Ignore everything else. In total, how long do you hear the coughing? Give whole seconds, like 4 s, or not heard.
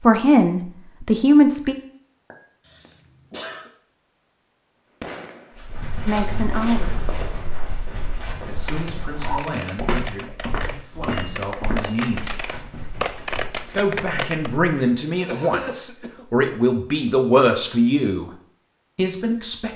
2 s.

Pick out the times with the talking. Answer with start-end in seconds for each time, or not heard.
0.0-1.8, 6.0-7.0, 8.4-12.3, 13.7-18.3, 18.9-19.7.